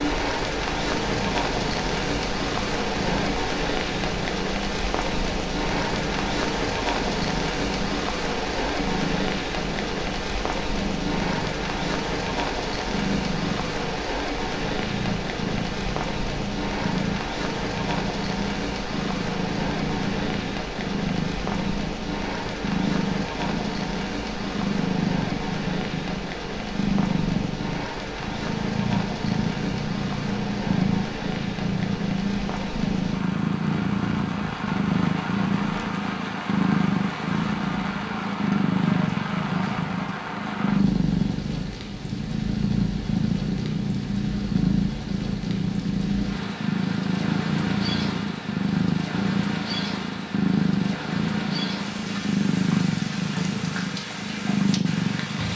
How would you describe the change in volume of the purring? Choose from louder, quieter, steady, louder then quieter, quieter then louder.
louder.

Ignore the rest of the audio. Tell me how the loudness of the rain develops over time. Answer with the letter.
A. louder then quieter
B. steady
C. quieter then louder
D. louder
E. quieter
E.